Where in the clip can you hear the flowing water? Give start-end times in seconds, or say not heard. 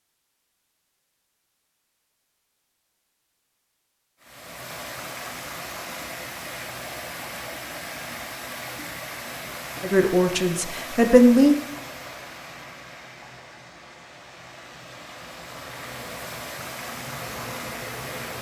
4.2-18.3.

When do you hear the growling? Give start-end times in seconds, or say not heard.
not heard.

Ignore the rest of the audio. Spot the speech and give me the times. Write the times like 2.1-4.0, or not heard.
9.8-11.6.